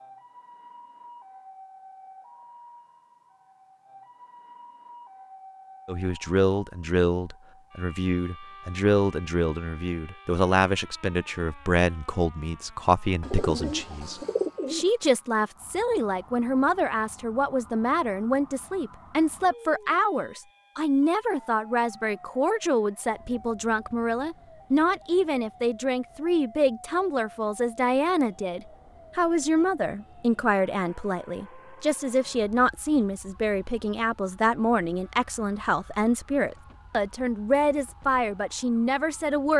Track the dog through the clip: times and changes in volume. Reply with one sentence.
The dog can't be heard in this clip.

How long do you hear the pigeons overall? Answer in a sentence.
You can hear the pigeons for 2 seconds altogether.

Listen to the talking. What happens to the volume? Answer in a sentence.
The loudness of the talking stays about the same.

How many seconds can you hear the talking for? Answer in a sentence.
The talking can be heard for 34 seconds in total.